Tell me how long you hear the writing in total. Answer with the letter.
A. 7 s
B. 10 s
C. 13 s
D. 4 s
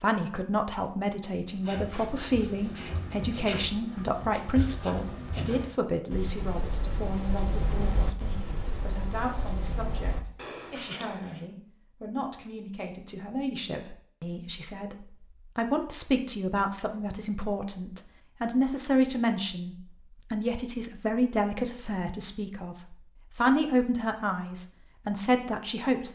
B.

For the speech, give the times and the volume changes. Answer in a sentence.
You can hear the speech from 0.0 to 26.0 s, getting quieter then louder.